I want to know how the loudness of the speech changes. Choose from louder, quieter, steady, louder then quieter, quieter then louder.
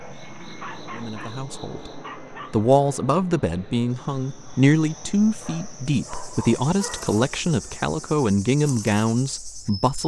steady.